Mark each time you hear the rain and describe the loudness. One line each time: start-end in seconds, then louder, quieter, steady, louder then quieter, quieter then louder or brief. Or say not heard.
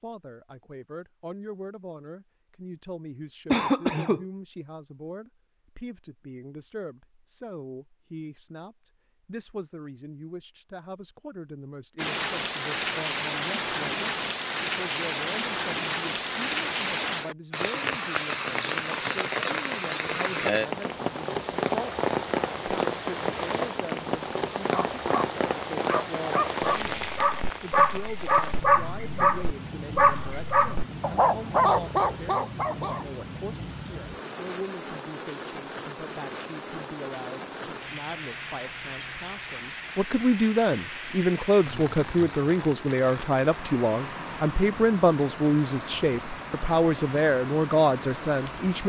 11.9-48.8 quieter.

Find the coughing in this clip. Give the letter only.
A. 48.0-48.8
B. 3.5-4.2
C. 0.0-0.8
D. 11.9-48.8
B.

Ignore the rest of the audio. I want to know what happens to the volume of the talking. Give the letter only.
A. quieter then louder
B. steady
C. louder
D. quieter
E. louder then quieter
C.